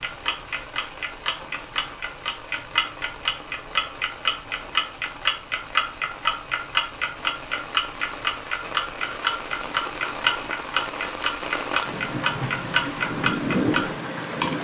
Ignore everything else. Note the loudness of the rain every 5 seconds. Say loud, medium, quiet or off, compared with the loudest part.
quiet, medium, loud.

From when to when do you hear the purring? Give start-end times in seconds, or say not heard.
not heard.